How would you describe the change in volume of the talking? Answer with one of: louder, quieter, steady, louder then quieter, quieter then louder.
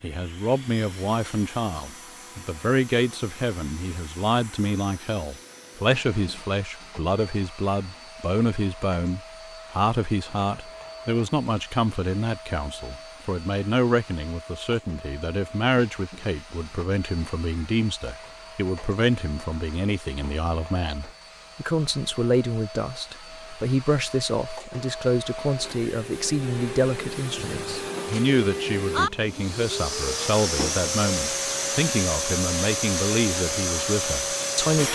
steady.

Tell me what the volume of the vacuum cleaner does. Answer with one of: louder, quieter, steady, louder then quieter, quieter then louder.
louder.